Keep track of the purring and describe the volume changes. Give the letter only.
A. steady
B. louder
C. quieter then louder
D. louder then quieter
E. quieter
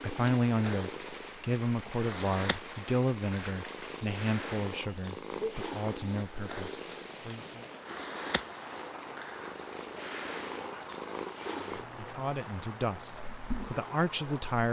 A.